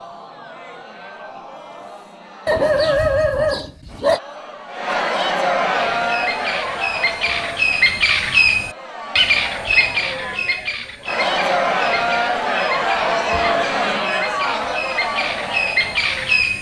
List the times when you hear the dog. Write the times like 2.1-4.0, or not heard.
2.5-4.2.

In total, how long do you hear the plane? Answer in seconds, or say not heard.
not heard.